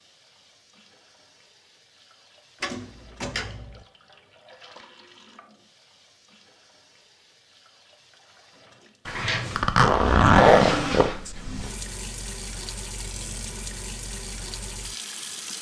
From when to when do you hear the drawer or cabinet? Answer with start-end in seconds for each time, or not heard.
2.6-3.9, 9.1-11.8.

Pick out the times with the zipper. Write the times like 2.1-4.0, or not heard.
9.6-11.7.